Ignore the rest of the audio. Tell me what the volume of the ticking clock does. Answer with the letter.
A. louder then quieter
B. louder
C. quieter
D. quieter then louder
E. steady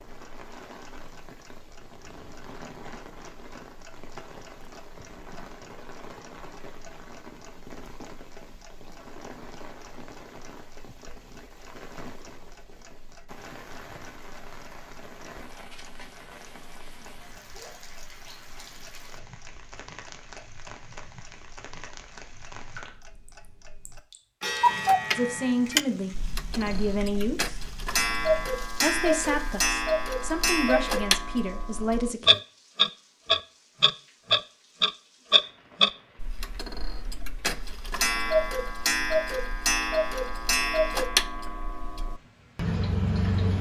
B.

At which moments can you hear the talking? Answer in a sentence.
The talking can be heard from 25.1 to 27.6 s and from 28.8 to 32.4 s.